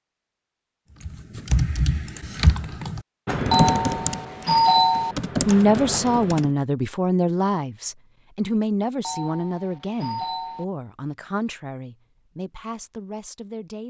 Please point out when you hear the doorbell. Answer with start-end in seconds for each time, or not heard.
3.5-5.2, 9.0-10.7.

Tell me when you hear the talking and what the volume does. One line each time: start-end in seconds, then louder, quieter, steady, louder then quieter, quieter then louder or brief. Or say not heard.
5.5-13.8 quieter.